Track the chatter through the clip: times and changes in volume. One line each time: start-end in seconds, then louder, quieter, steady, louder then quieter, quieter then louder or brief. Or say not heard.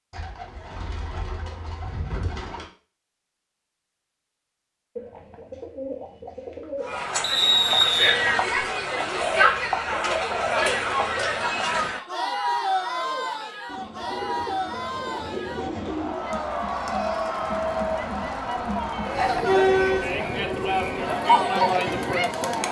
6.8-22.6 quieter then louder.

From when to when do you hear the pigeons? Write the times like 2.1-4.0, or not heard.
0.1-2.6, 5.0-7.4, 9.2-11.4, 13.7-16.2, 19.1-20.9.